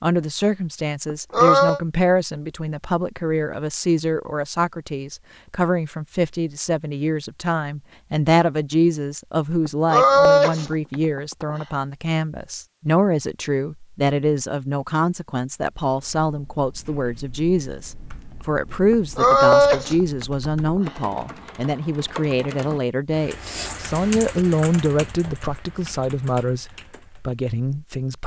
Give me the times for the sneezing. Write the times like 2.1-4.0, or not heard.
1.1-1.8, 9.7-11.7, 18.9-20.9.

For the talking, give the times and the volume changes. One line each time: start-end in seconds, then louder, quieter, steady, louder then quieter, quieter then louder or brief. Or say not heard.
0.0-28.2 steady.